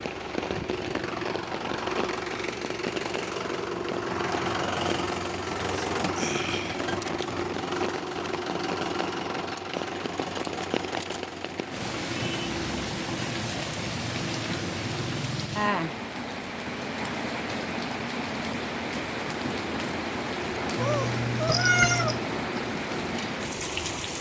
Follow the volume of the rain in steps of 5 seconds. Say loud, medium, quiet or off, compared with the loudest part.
medium, medium, loud, loud, loud.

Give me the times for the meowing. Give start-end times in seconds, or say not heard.
20.8-22.2.